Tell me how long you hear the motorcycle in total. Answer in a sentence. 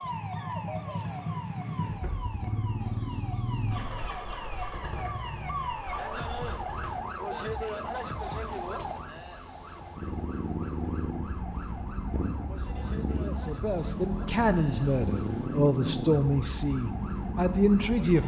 You can hear the motorcycle for 15 seconds altogether.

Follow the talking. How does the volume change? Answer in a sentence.
The loudness of the talking goes up.